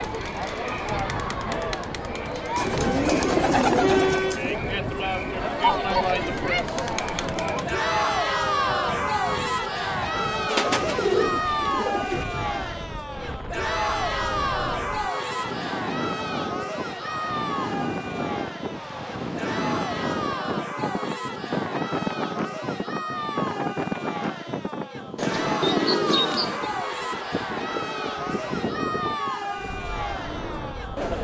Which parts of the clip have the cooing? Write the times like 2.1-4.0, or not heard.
2.5-4.6, 10.4-12.2, 25.1-26.7.